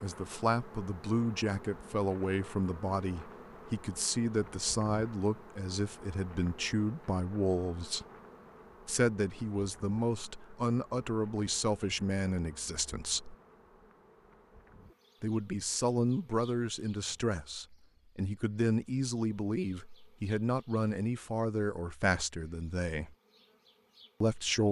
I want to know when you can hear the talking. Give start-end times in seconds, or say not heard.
0.0-8.1, 8.8-13.3, 15.2-23.1, 24.2-24.6.